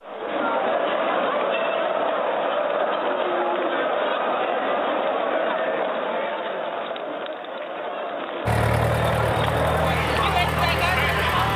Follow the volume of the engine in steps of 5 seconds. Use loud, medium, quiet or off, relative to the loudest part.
off, loud, loud.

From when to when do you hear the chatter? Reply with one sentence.
The chatter can be heard from 0.0 to 11.5 s.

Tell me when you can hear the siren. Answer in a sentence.
You can't hear the siren here.